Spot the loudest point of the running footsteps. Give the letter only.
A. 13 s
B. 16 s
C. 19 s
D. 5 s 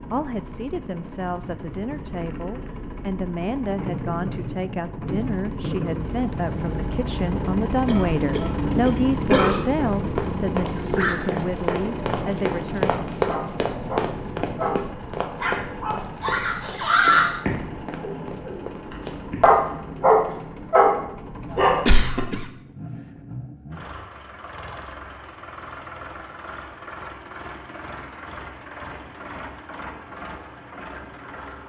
A.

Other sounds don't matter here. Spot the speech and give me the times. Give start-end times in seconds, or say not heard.
0.0-13.0.